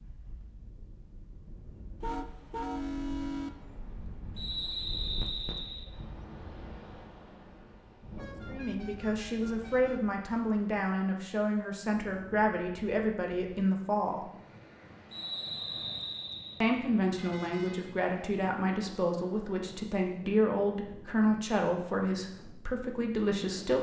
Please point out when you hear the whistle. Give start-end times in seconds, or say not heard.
4.3-5.8, 15.1-16.6.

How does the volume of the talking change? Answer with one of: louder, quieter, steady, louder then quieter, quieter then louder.
steady.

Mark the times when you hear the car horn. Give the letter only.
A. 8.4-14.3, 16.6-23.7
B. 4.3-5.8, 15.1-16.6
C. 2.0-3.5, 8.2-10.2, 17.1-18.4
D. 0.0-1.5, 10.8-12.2
C.